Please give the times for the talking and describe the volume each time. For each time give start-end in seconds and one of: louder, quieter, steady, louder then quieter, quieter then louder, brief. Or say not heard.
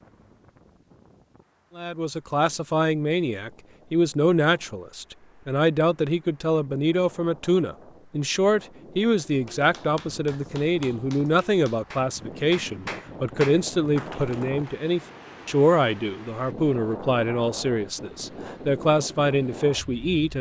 1.8-20.3 steady.